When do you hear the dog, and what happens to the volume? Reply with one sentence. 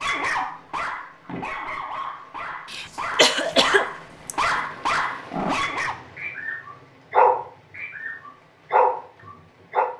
The dog can be heard from 0.0 to 9.9 s, getting louder.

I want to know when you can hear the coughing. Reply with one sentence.
The coughing can be heard from 2.7 to 4.6 s.